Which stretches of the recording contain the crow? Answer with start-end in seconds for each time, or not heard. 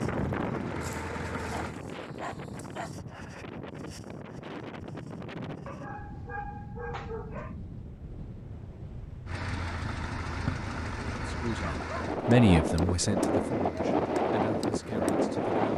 not heard.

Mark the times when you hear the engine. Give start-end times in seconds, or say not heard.
0.1-1.8, 9.2-15.7.